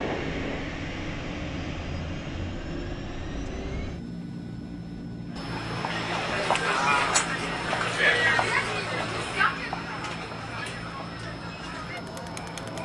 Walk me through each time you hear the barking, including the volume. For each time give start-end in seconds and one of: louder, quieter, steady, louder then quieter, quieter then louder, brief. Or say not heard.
not heard.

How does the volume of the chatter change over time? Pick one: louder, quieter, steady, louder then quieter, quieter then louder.
quieter.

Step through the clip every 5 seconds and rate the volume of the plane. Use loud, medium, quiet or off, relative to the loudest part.
loud, loud, medium.